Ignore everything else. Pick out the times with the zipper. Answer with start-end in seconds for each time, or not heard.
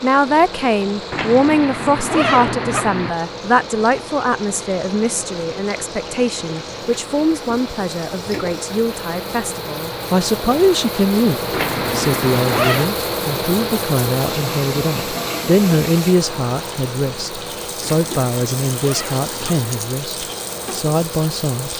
1.1-3.1, 11.5-12.9, 17.8-19.7.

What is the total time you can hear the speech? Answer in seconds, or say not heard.
22 s.